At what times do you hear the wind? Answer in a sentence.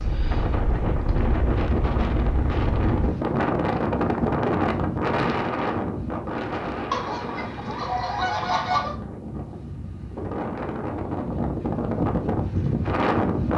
You can hear the wind from 0.0 to 13.5 s.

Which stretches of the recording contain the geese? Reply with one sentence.
You can hear the geese from 6.9 to 8.9 s.